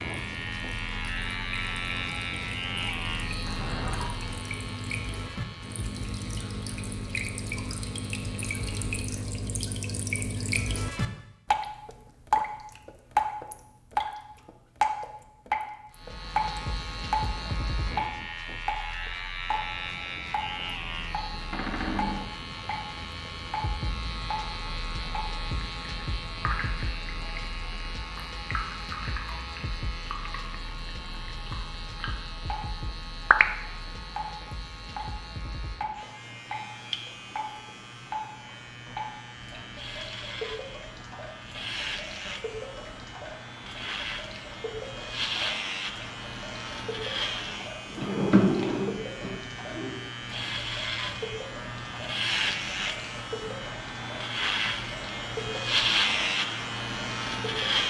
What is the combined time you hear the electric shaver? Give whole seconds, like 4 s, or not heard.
51 s.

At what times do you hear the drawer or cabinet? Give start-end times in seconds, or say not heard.
3.4-4.2, 21.5-22.2, 47.9-50.0.